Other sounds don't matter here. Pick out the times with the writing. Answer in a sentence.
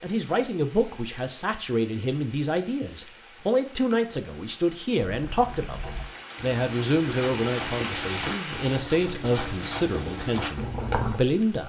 The writing can be heard from 5.1 to 11.2 s.